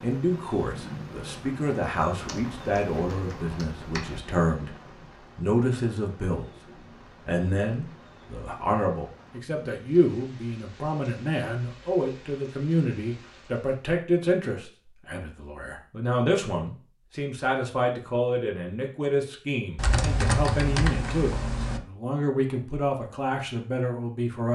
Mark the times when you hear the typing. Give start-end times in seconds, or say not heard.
2.2-4.2, 19.8-21.8.